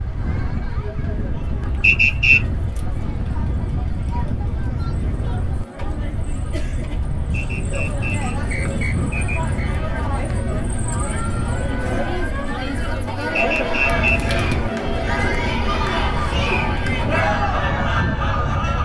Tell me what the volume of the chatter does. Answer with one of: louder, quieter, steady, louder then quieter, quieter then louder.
louder.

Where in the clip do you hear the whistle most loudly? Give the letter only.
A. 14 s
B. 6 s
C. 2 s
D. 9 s
C.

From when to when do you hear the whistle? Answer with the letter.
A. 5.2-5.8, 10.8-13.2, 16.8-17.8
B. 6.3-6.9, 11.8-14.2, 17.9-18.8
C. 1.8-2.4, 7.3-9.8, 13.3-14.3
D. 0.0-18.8
C.